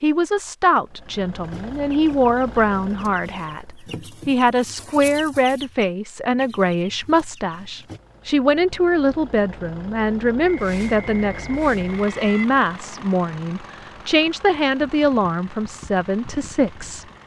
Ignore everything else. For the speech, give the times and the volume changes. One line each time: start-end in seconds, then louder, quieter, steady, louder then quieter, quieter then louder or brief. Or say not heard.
0.0-17.1 steady.